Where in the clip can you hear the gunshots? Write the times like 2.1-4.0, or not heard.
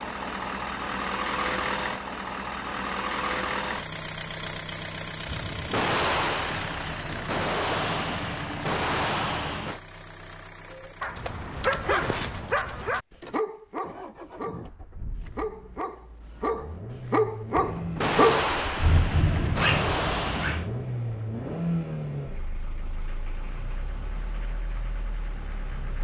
5.2-9.8, 17.6-20.7.